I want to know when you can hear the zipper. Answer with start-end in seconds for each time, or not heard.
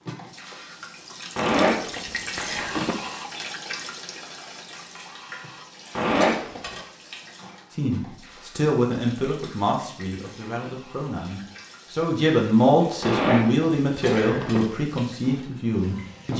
1.4-3.0, 6.0-6.7, 13.0-14.6.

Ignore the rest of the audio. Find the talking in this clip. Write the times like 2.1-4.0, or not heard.
7.8-16.3.